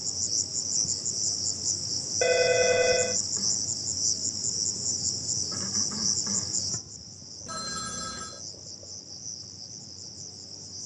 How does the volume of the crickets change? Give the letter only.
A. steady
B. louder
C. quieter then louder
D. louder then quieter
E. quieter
E.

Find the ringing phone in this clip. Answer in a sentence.
You can hear the ringing phone from 2.2 to 3.2 s and from 7.5 to 8.4 s.